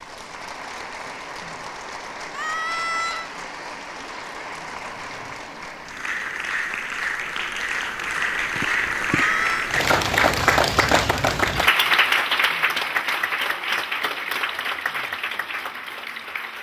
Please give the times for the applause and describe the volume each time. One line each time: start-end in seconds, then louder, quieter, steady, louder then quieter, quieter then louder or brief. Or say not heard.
0.0-16.5 louder then quieter.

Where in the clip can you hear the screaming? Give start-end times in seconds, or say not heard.
2.3-3.3, 9.1-9.7.